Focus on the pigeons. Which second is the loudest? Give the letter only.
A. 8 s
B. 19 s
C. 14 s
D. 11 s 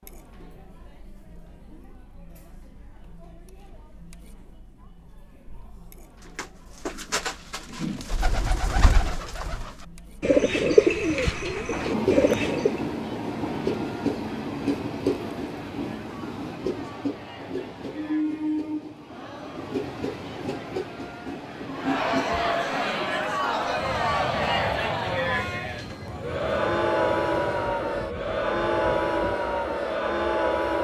D.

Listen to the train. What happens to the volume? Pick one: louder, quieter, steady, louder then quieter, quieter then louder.
quieter.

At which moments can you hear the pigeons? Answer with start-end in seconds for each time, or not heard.
6.3-12.8.